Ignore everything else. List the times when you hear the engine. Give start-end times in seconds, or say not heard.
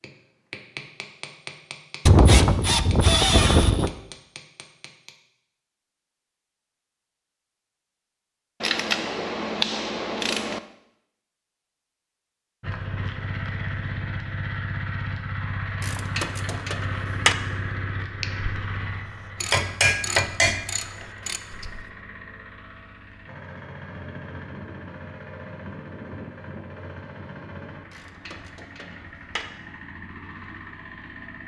12.6-31.4.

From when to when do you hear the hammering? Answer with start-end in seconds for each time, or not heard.
0.0-5.2, 18.1-21.9.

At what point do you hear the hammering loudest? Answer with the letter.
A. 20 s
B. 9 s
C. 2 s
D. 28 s
A.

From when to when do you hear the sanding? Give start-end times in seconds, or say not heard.
not heard.